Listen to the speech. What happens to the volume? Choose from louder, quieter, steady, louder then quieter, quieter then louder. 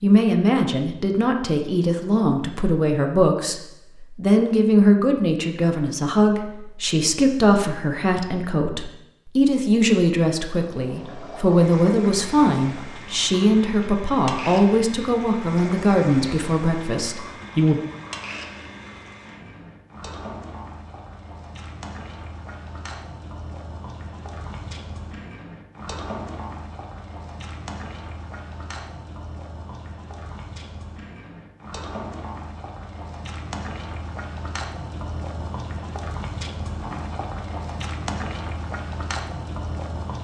steady.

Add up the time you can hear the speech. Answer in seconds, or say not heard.
18 s.